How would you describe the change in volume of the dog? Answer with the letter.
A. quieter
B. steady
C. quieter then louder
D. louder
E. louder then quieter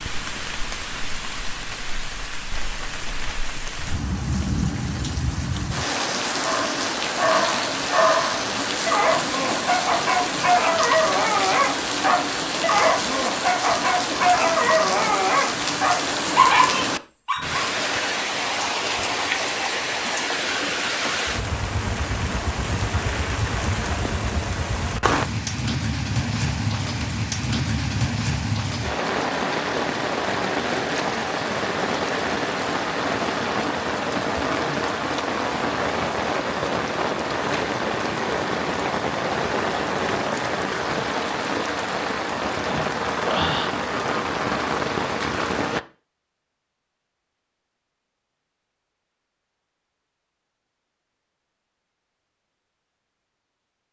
B.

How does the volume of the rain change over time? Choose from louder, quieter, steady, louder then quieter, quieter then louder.
steady.